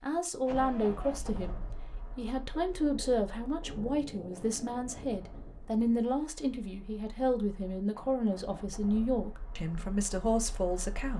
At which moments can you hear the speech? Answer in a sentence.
You can hear the speech from 0.0 to 11.1 s.